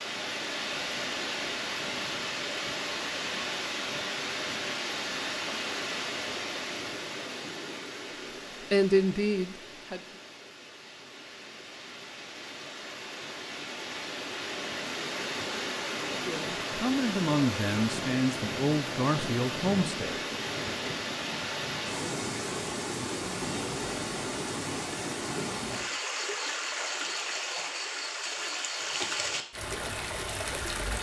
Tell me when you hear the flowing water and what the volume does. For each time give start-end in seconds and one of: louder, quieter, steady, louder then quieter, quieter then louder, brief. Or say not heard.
0.0-30.9 quieter then louder.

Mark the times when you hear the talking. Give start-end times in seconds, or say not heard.
8.7-10.0, 16.2-20.2.